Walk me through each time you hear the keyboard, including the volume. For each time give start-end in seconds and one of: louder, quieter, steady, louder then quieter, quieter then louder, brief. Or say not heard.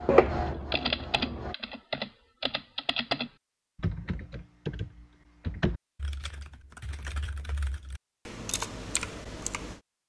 0.5-9.8 quieter then louder.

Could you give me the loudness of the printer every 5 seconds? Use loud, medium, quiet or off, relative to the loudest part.
loud, off.